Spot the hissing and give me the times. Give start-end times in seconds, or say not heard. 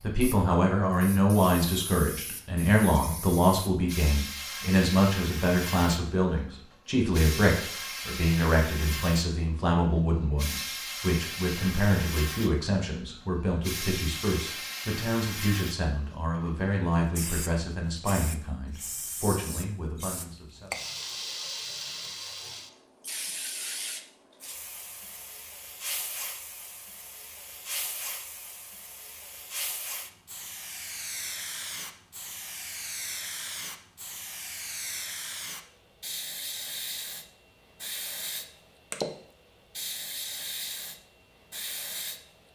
0.0-42.5.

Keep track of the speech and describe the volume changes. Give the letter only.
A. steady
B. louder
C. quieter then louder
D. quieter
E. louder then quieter
D.